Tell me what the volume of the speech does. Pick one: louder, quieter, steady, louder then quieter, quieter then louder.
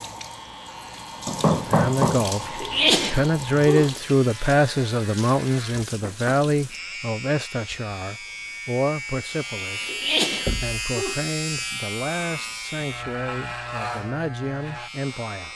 quieter.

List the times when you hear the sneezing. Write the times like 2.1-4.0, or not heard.
2.5-3.9, 9.8-11.2.